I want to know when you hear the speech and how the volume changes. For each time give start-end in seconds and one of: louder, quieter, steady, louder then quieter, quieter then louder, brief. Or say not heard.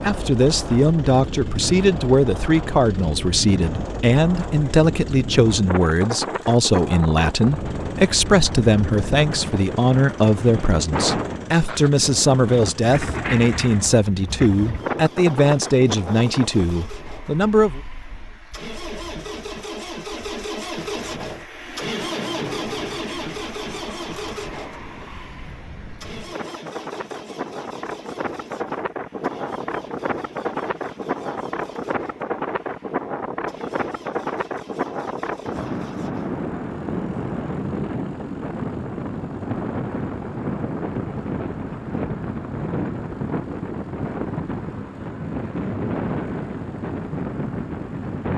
0.0-17.8 steady.